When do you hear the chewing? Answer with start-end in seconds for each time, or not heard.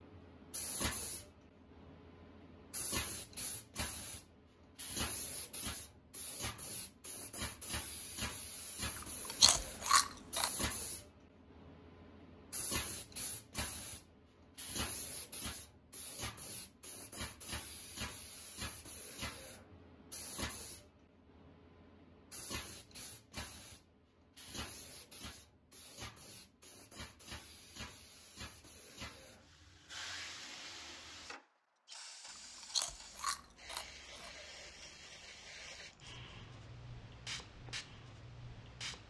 8.9-10.5, 32.4-34.3.